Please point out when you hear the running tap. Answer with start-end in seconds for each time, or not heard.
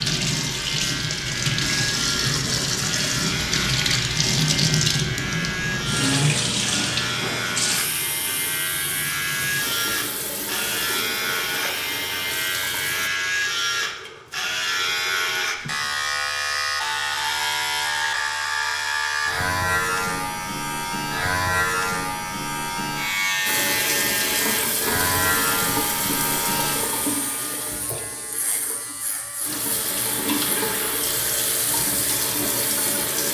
0.0-13.1, 23.4-33.2.